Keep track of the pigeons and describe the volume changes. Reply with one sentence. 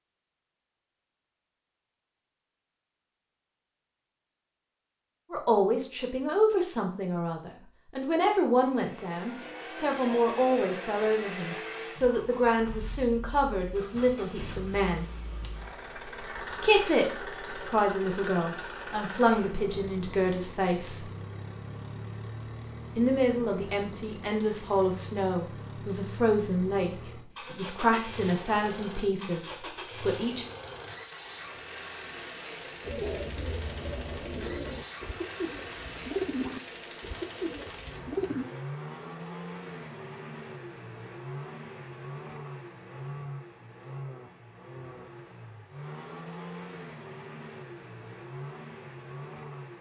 The loudness of the pigeons goes up, then down.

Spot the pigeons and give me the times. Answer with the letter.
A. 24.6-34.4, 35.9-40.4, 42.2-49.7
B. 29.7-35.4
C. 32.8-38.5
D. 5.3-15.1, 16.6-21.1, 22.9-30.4
C.